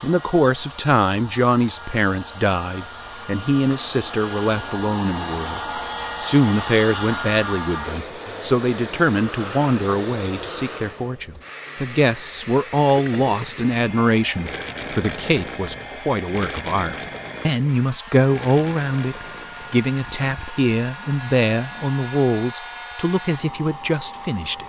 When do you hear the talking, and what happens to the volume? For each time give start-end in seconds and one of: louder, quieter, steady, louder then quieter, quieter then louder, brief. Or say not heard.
0.0-24.6 steady.